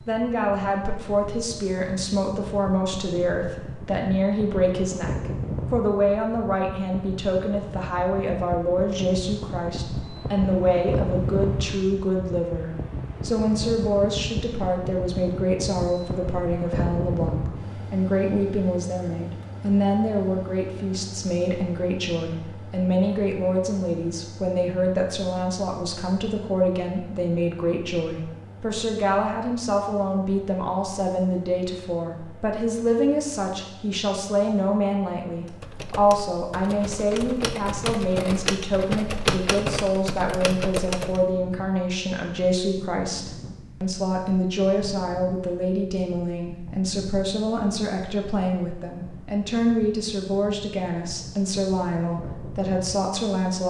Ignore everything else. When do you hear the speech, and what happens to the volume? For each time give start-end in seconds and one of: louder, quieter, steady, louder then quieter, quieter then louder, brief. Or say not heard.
0.1-53.6 steady.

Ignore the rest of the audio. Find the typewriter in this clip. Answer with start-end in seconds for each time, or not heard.
35.5-41.2.